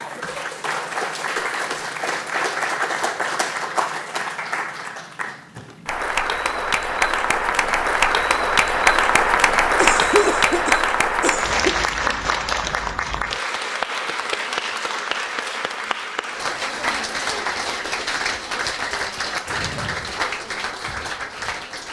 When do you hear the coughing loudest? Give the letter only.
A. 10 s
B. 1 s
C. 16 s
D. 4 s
A.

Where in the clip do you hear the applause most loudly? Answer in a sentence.
The volume of the applause peaks at 9 seconds.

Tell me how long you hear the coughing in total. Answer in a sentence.
You can hear the coughing for 2 seconds altogether.